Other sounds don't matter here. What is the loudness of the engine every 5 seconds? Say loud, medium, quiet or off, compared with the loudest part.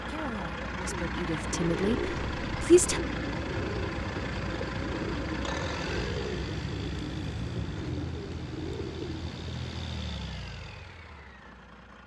loud, loud, medium.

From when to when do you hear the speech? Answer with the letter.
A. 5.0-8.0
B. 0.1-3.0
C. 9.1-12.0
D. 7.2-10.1
B.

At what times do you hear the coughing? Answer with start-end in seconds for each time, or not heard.
not heard.